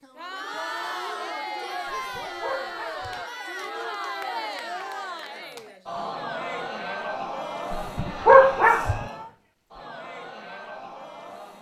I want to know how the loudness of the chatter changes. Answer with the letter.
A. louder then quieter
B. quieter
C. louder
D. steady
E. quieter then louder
B.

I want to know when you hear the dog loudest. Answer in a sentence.
The loudest moment of the dog is at 8 seconds.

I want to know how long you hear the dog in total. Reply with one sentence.
You can hear the dog for 3 seconds altogether.